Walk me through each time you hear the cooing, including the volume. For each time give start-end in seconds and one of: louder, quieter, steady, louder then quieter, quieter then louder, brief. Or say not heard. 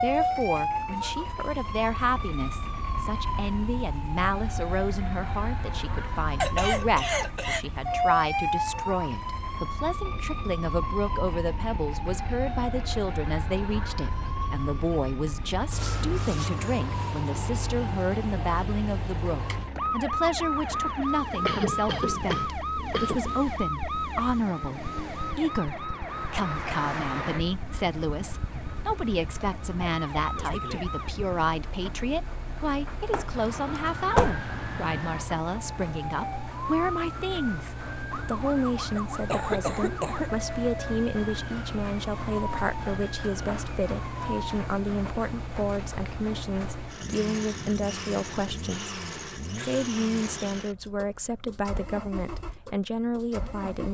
not heard.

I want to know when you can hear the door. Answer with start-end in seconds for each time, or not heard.
33.1-34.5.